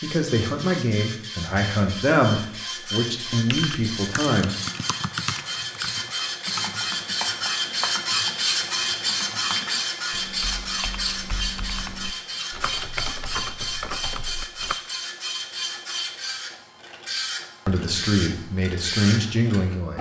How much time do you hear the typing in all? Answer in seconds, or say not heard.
11 s.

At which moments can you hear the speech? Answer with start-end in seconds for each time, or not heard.
0.0-4.5, 17.6-19.9.